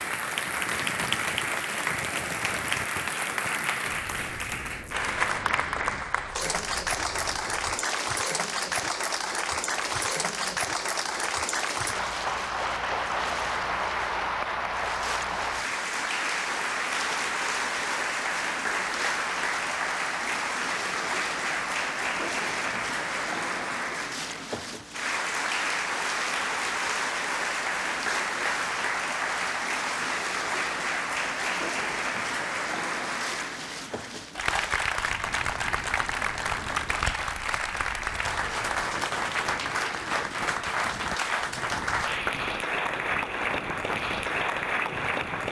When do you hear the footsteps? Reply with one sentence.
The footsteps can't be heard in this clip.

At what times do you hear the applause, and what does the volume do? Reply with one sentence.
The applause can be heard from 0.0 to 45.4 s, at a steady volume.